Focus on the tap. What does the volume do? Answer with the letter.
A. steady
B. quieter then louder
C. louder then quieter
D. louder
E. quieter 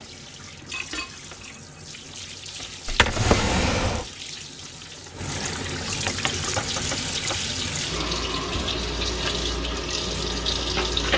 D.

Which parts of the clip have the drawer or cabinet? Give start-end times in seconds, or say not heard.
2.9-4.0.